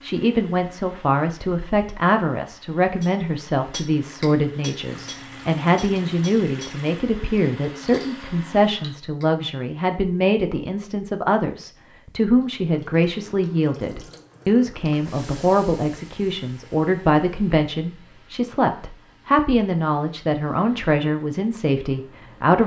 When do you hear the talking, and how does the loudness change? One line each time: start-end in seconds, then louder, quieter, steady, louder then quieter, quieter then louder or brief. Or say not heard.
0.0-22.6 steady.